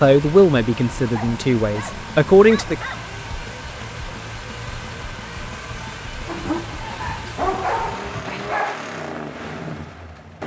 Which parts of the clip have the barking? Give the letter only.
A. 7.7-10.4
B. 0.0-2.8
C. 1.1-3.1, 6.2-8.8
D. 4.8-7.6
C.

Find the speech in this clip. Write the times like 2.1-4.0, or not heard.
0.0-2.8.